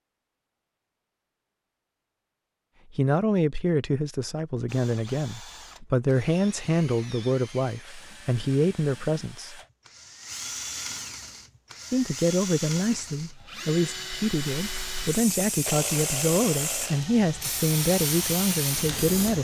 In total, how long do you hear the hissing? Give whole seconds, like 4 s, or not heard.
5 s.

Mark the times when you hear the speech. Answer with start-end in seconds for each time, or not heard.
2.9-9.6, 11.9-19.3.